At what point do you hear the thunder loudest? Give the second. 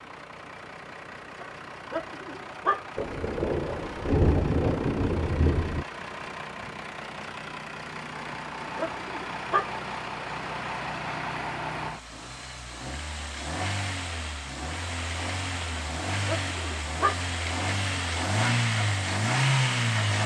4 s.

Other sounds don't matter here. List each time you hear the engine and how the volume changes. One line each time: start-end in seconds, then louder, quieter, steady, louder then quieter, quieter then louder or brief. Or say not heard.
0.0-20.2 louder.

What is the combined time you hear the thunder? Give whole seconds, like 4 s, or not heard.
3 s.